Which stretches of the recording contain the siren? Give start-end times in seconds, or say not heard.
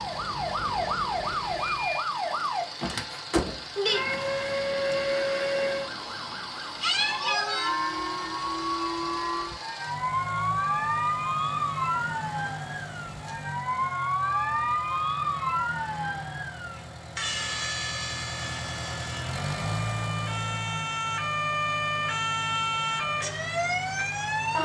0.0-24.6.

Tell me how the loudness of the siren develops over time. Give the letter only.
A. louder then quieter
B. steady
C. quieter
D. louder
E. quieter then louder
B.